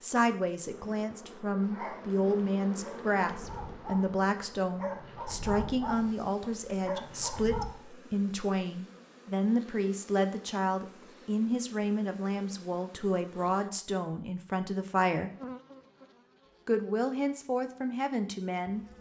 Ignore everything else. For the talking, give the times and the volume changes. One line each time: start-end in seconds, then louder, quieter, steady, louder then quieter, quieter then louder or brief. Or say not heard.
0.0-15.3 steady
16.6-18.9 brief.